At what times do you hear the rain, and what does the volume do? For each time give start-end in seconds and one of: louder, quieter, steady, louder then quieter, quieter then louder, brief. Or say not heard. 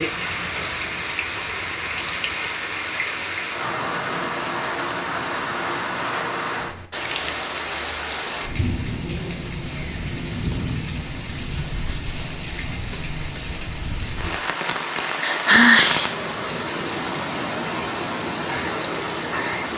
0.0-19.7 steady.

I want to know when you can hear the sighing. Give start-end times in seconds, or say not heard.
15.2-16.1.